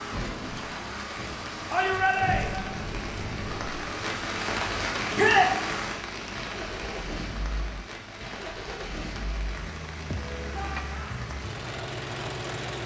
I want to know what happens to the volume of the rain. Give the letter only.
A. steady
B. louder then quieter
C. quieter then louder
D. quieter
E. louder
B.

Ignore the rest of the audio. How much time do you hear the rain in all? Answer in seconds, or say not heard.
13 s.